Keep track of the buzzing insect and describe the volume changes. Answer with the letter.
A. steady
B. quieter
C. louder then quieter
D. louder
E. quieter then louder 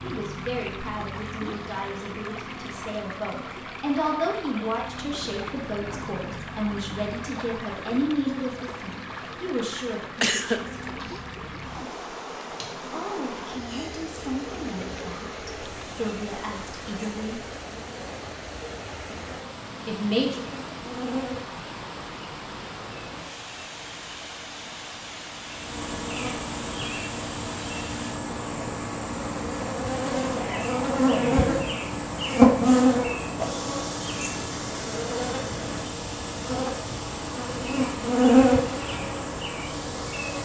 D.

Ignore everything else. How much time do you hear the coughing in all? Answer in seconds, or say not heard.
2 s.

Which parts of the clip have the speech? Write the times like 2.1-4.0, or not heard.
0.0-11.1, 12.9-17.4, 19.9-20.4.